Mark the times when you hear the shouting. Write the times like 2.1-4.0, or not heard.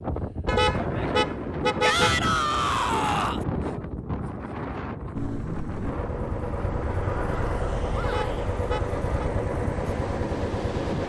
1.8-3.5, 7.9-8.4.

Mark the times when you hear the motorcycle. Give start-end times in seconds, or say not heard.
5.2-11.0.